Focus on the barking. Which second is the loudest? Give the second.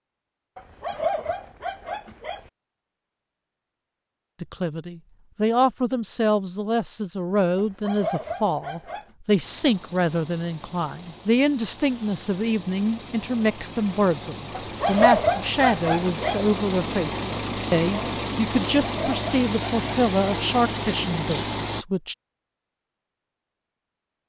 15 s.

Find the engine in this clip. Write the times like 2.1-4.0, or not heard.
9.4-21.9.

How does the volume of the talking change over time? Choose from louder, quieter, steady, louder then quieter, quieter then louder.
steady.